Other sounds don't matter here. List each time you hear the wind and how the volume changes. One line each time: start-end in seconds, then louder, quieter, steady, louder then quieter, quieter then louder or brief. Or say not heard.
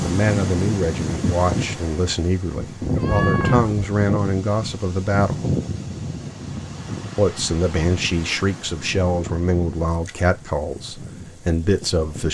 0.0-12.3 quieter.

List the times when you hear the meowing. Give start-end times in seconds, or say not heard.
2.8-3.9.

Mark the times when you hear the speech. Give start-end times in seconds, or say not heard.
0.0-5.4, 7.2-12.3.